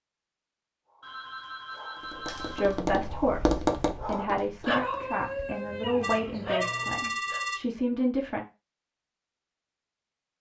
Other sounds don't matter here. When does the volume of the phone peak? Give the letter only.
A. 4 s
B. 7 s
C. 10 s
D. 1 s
B.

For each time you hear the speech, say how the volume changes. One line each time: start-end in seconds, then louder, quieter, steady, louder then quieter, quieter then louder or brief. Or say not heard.
2.5-8.4 steady.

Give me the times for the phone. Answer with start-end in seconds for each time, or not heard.
1.0-2.9, 6.0-7.6.